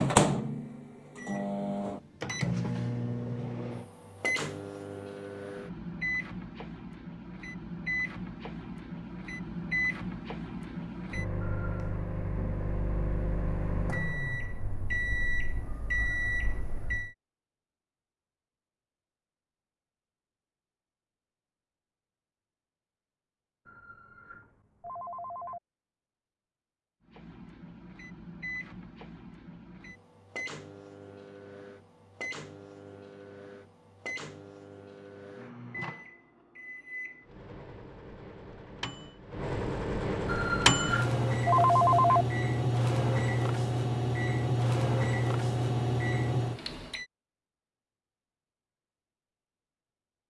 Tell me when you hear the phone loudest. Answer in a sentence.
The loudest moment of the phone is at 42 seconds.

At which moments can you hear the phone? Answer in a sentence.
The phone can be heard from 11.4 to 11.9 s, from 23.6 to 25.6 s and from 40.2 to 42.2 s.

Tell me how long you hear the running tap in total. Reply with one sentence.
You can't hear the running tap here.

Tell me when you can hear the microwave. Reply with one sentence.
The microwave can be heard from 0.0 to 17.1 s and from 27.1 to 47.0 s.